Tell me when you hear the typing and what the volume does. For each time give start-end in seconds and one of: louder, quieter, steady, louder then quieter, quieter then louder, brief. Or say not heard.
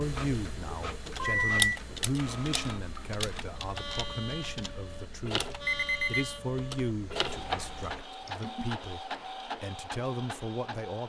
0.0-8.7 quieter.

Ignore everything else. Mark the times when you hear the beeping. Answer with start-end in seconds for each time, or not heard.
1.1-1.6, 5.7-6.2.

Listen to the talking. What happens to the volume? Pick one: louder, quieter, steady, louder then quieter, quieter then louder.
steady.